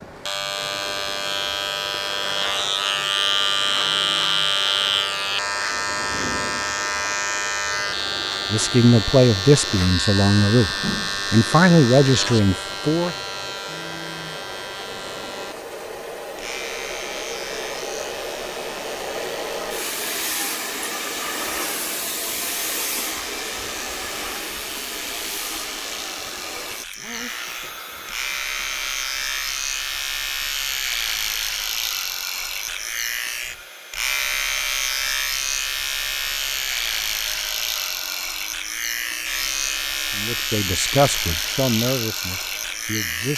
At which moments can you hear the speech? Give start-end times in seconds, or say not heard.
8.5-13.2, 40.1-43.3.